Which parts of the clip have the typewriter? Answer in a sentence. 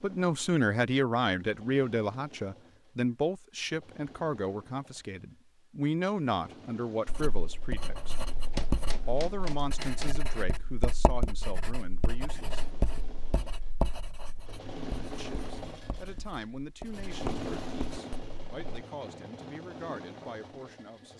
You can hear the typewriter from 8.5 to 10.2 s.